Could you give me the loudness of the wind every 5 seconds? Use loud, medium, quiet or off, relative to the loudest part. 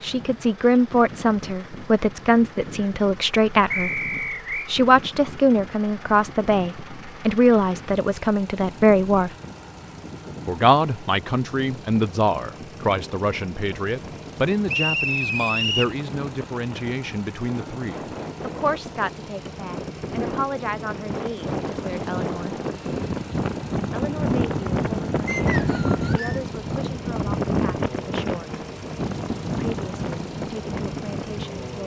quiet, quiet, quiet, medium, loud, loud, medium.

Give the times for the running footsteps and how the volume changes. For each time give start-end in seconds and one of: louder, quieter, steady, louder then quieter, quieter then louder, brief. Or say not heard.
not heard.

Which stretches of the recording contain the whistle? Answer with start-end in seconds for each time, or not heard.
3.7-4.7, 14.7-15.9, 25.2-26.4.